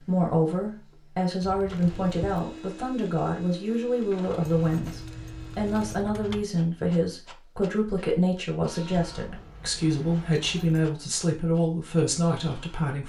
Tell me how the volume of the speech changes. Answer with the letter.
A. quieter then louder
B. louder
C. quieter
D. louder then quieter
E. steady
E.